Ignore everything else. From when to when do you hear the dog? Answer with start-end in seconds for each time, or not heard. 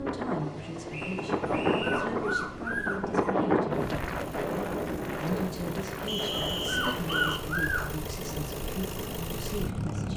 1.4-3.4, 6.5-8.1.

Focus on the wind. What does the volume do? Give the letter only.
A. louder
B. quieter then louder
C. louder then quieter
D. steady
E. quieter
E.